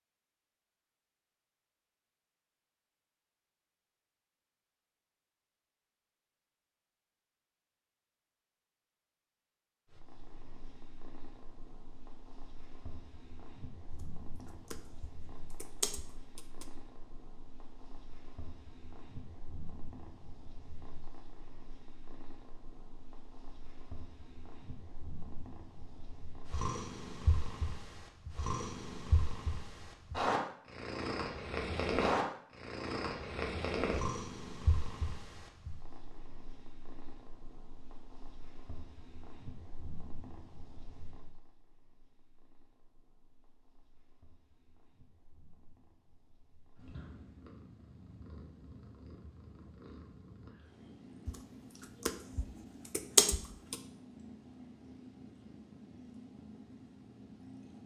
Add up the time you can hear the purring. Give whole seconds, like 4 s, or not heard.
48 s.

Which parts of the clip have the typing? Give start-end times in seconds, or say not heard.
13.9-16.7, 51.2-53.8.